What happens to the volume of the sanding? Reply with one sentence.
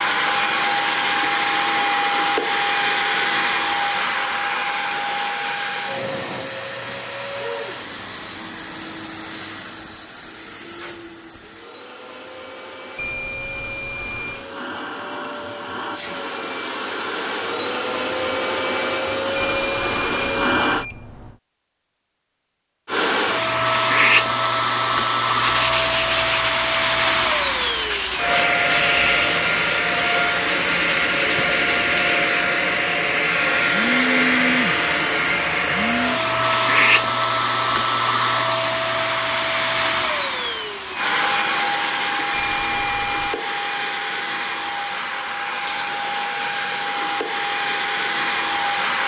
The loudness of the sanding goes down.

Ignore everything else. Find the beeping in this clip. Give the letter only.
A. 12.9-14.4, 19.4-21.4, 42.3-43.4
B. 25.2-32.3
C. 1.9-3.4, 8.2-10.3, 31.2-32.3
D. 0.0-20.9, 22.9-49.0
A.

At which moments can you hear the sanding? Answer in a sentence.
You can hear the sanding from 25.2 to 32.3 s.